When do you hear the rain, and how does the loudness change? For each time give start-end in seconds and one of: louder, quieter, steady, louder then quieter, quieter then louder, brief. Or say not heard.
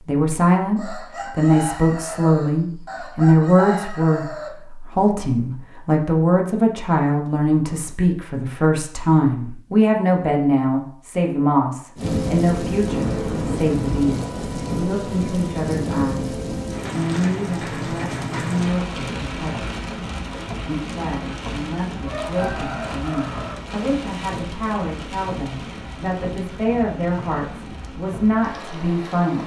11.9-29.4 quieter.